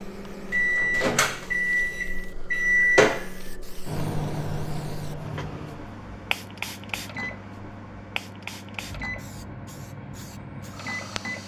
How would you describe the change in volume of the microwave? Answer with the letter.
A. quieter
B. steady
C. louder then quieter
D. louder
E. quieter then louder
A.